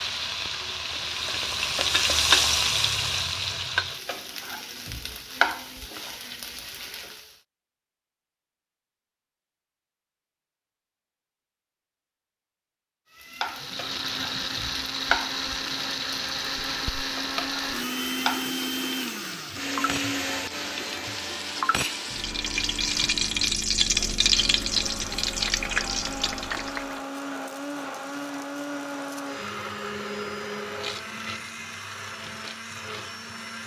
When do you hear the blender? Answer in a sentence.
The blender can be heard from 13.4 to 33.6 s.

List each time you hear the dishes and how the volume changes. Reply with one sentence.
The dishes can't be heard in this clip.